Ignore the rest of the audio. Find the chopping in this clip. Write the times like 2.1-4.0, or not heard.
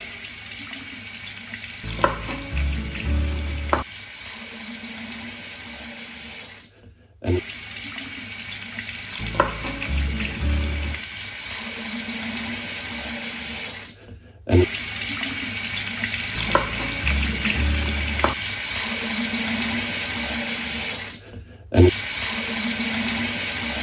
1.8-3.9, 9.2-11.0, 16.4-18.4.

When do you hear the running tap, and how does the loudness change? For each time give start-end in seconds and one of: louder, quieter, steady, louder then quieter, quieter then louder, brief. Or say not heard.
0.0-23.7 louder.